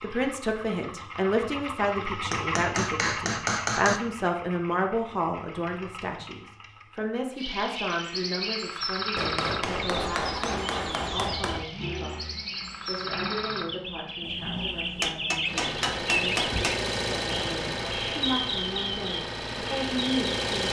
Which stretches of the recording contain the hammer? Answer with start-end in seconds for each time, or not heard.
2.3-4.0, 9.2-11.7, 14.2-16.9.